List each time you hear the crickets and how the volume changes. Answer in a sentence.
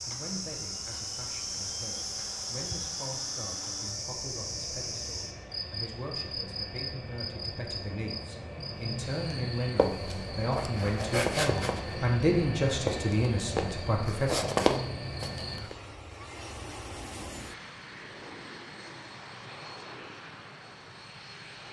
The crickets can be heard from 0.0 to 15.7 s, getting quieter.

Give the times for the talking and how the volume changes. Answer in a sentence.
You can hear the talking from 0.0 to 14.6 s, getting louder.